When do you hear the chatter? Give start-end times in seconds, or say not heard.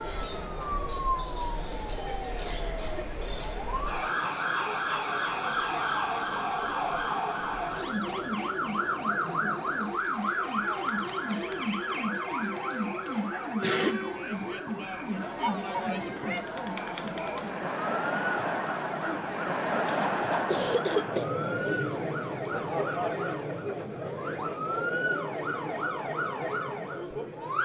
0.0-27.6.